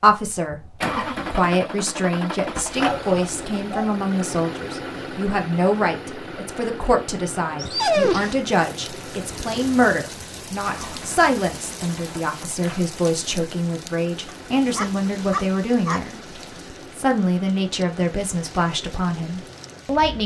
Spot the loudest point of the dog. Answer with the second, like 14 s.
8 s.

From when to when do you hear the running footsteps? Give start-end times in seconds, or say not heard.
not heard.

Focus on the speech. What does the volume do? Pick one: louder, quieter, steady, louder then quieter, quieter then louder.
steady.